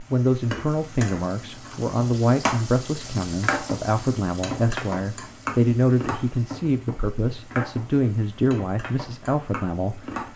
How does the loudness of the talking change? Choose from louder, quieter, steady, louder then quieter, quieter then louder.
steady.